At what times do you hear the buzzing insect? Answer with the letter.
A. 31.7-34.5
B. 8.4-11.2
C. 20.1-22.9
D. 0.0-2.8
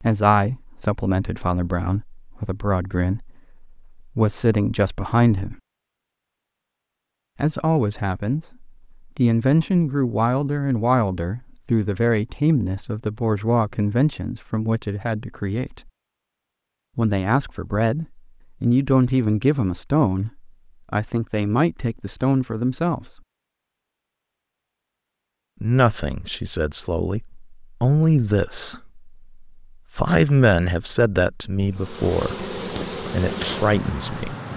A.